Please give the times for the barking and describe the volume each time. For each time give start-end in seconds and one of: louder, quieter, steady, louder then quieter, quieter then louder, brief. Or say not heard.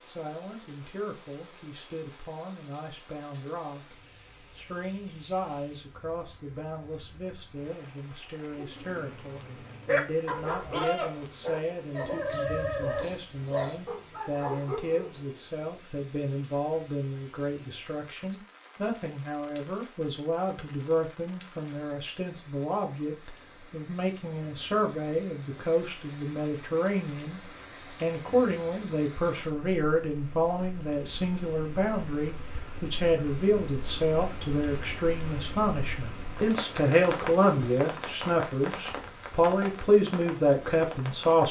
8.6-15.1 steady.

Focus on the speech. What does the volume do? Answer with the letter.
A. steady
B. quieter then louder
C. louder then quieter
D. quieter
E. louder
E.